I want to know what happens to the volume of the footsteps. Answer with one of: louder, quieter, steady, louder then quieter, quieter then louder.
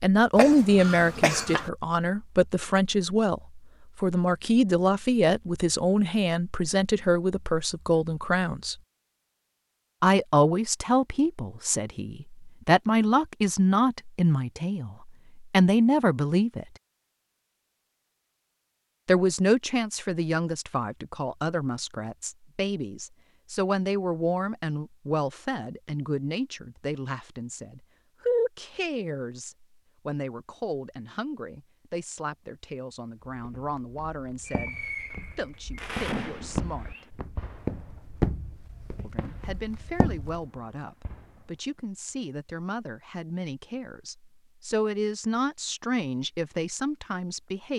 louder then quieter.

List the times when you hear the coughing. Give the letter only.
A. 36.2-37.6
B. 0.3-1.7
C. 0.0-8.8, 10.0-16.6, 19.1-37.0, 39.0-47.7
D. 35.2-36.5
B.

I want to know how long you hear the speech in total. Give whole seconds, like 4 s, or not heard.
42 s.